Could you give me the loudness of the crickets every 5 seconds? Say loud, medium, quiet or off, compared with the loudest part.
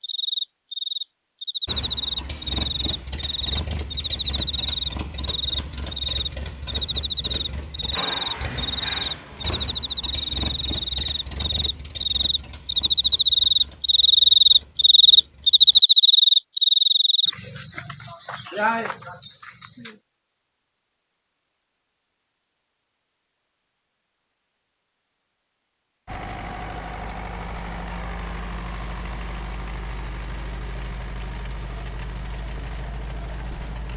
medium, medium, loud, loud, off, off, off.